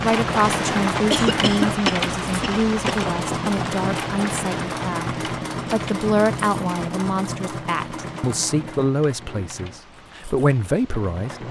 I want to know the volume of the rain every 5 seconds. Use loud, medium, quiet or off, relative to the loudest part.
loud, quiet, quiet.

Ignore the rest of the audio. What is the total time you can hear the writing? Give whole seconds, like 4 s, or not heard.
not heard.